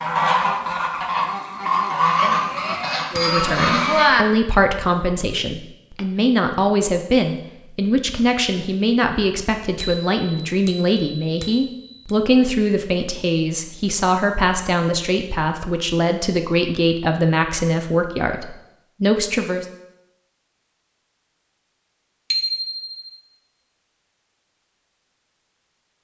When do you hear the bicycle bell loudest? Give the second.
4 s.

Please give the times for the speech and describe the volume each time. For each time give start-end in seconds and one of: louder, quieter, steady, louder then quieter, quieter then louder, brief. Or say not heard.
3.1-19.6 steady.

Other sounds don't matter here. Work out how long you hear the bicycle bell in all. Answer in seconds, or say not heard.
5 s.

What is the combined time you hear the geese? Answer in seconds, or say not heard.
4 s.